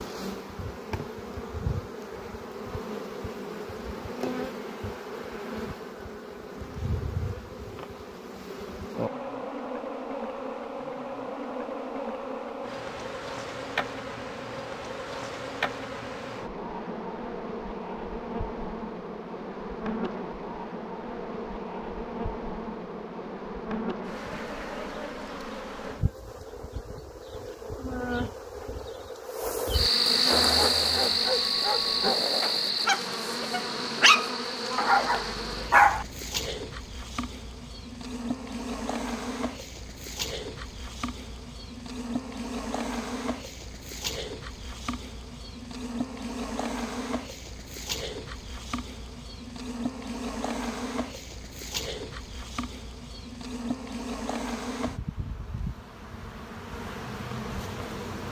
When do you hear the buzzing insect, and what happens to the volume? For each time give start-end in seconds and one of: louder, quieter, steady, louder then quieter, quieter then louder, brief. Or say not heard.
0.0-58.2 louder then quieter.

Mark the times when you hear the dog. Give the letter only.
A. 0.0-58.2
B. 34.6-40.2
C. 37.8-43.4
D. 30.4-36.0
D.